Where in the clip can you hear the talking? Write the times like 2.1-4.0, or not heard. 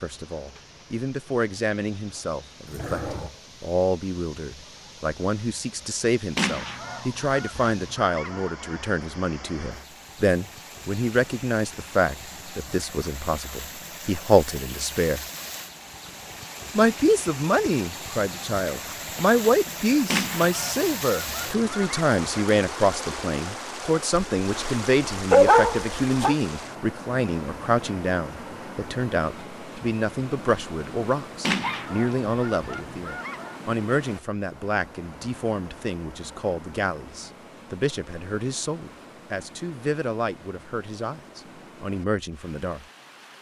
0.0-15.2, 16.8-42.9.